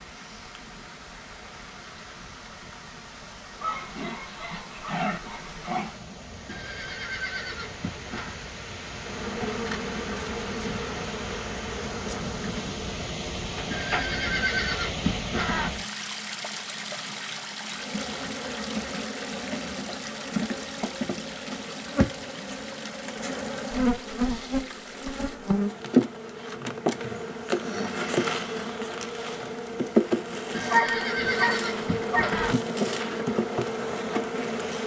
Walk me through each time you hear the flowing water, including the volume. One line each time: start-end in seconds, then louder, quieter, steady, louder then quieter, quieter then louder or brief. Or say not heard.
0.0-25.4 louder then quieter.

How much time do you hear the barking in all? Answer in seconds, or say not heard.
4 s.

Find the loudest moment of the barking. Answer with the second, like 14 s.
31 s.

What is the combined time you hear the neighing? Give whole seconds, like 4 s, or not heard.
6 s.